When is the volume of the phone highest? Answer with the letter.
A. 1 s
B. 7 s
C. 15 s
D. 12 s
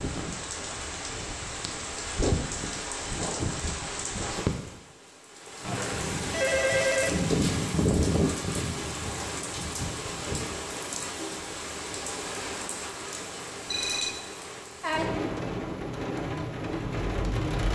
B.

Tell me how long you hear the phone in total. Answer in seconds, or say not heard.
2 s.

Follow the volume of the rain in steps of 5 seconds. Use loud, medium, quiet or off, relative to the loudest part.
loud, loud, medium, loud.